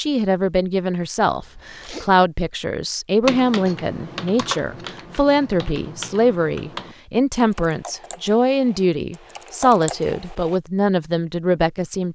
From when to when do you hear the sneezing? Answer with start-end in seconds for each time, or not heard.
1.4-2.1.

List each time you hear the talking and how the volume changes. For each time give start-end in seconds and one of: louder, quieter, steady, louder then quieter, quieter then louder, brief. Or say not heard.
0.0-12.1 steady.